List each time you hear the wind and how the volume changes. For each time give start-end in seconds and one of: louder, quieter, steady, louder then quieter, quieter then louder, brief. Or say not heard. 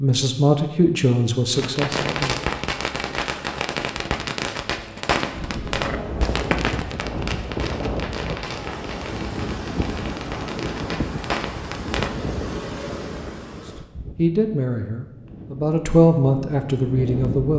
5.3-17.5 quieter.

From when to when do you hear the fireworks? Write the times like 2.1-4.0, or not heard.
1.6-12.1.